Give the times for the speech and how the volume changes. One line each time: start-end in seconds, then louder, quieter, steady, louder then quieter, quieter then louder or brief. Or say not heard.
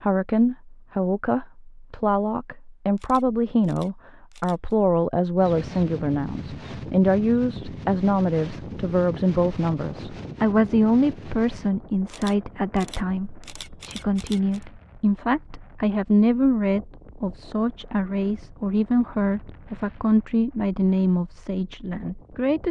0.0-22.6 steady.